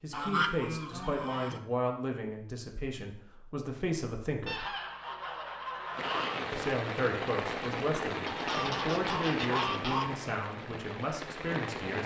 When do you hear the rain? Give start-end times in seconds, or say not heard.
5.9-12.0.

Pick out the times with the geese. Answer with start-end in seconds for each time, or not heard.
0.1-1.6, 4.5-6.5, 8.2-10.1.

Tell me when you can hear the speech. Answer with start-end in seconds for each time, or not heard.
0.0-4.7, 6.5-12.0.